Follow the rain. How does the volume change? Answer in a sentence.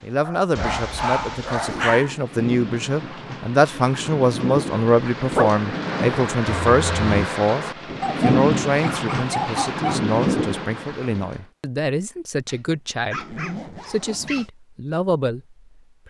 The volume of the rain goes up.